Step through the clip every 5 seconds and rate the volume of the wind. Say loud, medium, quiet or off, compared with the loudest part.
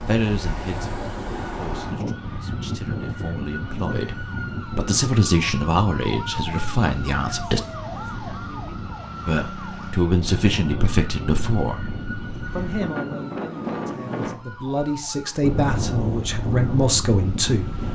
loud, medium, loud, loud.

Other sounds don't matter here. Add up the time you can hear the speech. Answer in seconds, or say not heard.
15 s.